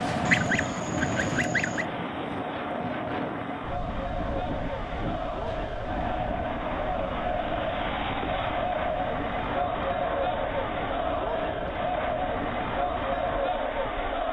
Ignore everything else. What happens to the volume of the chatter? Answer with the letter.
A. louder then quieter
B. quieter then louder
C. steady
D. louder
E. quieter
D.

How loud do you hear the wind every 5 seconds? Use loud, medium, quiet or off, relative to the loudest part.
loud, medium, medium.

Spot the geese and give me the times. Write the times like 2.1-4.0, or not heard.
0.2-1.9.